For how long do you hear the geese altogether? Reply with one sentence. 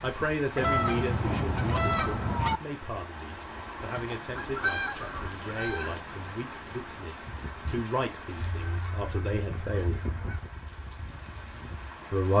The geese can be heard for 6 seconds in total.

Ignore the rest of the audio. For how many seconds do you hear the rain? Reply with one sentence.
You can hear the rain for 12 seconds altogether.